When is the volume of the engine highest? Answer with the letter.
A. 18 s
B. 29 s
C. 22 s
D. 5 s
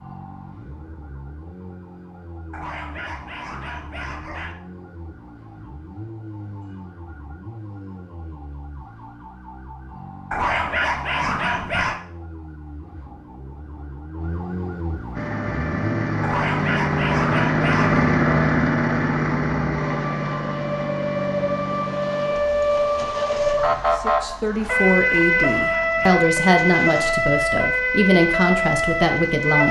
A.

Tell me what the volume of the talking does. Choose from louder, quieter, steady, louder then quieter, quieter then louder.
steady.